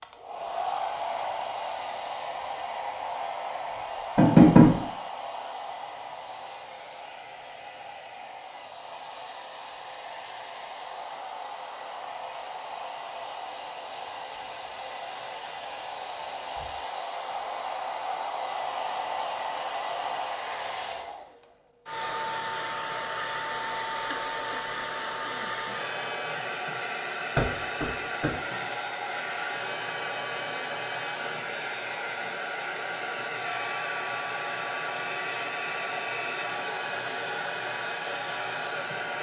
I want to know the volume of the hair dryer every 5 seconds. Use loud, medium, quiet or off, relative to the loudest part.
loud, medium, medium, loud, loud, loud, loud, loud.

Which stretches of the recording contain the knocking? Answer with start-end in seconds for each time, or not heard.
3.7-4.8, 27.4-28.4.